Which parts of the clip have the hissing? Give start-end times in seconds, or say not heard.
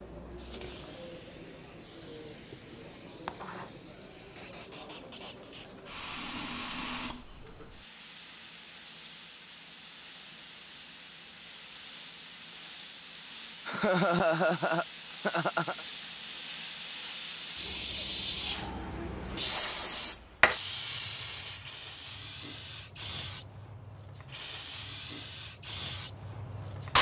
0.0-26.9.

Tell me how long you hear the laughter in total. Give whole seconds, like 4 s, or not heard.
2 s.